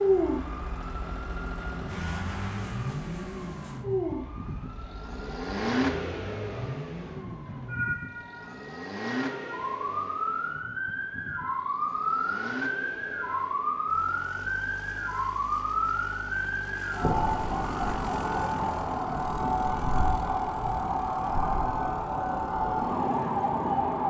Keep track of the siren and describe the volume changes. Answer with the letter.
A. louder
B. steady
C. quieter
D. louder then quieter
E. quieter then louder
A.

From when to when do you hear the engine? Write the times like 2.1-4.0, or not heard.
0.0-24.0.